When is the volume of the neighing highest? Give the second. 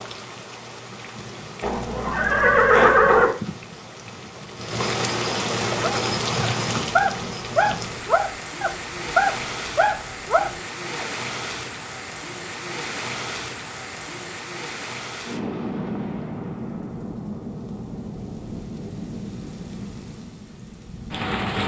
3 s.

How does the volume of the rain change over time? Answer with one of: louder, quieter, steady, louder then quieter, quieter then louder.
louder then quieter.